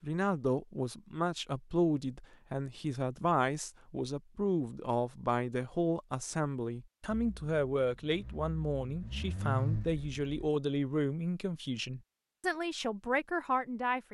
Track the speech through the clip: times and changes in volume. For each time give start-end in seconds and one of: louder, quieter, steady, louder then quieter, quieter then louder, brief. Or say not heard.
0.0-14.0 steady.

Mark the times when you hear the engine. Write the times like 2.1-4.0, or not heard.
7.0-10.5.